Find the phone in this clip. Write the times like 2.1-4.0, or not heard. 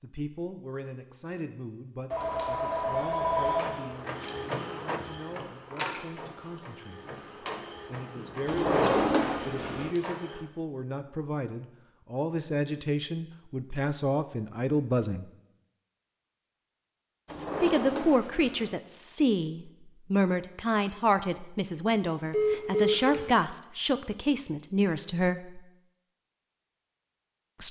2.1-3.8, 22.3-23.3.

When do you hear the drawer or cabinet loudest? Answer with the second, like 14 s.
9 s.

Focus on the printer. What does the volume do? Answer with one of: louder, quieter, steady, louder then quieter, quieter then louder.
quieter.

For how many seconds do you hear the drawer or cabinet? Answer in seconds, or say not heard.
3 s.